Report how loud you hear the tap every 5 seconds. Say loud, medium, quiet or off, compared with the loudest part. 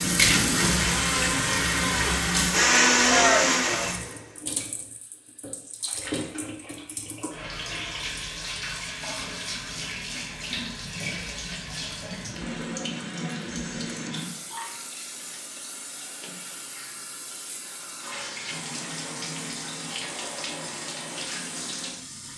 loud, medium, medium, medium, medium.